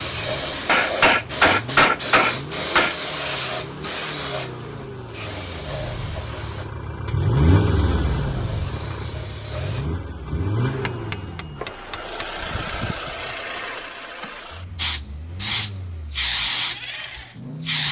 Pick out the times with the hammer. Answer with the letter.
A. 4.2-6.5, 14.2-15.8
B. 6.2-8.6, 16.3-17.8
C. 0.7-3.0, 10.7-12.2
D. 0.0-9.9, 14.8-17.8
C.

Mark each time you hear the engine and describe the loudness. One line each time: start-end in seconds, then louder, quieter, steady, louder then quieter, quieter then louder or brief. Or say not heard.
0.0-17.8 louder then quieter.